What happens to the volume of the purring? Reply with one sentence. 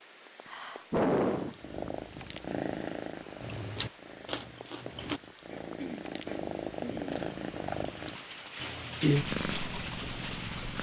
The volume of the purring goes down, then up.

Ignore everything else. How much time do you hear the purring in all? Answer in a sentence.
The purring can be heard for 9 seconds in total.